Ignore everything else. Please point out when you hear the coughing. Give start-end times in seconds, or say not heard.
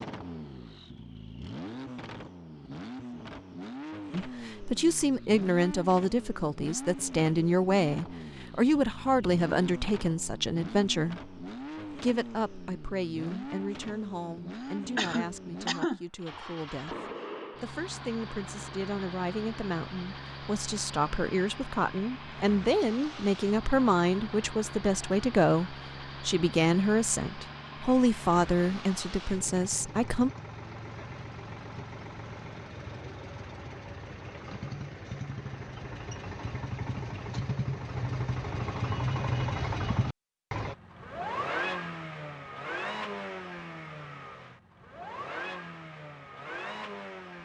14.6-16.0.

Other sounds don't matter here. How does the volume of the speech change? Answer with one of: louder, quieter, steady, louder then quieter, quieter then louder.
quieter then louder.